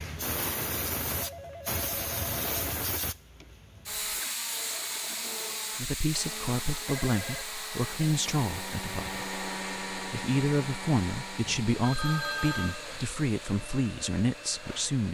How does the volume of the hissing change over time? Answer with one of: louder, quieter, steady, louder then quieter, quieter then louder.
quieter.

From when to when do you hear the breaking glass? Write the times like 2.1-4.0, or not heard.
not heard.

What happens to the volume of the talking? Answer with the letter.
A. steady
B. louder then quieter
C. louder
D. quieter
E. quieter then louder
A.